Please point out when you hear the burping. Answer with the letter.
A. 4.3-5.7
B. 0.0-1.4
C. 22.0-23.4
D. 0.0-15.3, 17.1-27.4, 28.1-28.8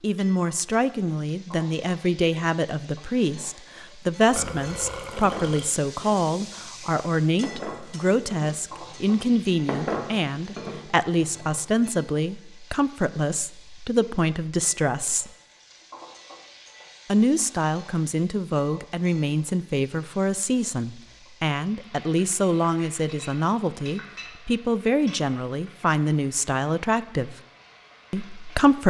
A.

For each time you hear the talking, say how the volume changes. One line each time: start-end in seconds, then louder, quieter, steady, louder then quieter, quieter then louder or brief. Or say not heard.
0.0-15.3 steady
17.1-27.4 steady
28.1-28.8 brief.